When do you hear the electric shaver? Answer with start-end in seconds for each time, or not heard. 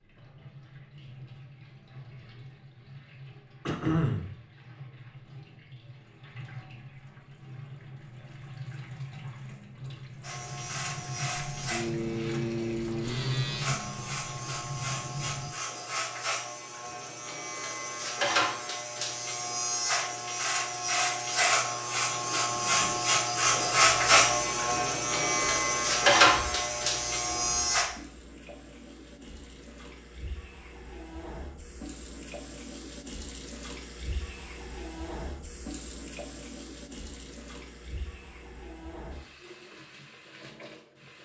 10.2-27.9.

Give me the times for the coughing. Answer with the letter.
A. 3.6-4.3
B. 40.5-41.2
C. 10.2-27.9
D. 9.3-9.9
A.